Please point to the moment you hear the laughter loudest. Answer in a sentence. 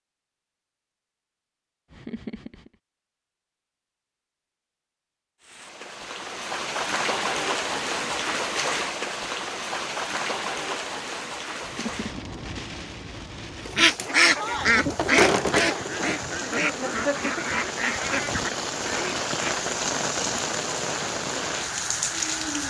The volume of the laughter peaks at 17 seconds.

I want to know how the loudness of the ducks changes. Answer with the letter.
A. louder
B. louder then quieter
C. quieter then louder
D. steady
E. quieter
E.